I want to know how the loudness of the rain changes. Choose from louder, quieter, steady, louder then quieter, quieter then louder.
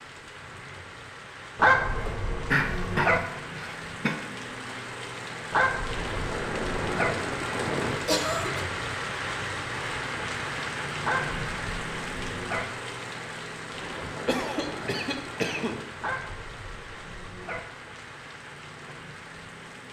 louder then quieter.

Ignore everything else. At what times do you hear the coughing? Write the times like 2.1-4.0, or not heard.
2.0-4.2, 8.1-8.7, 14.2-15.8.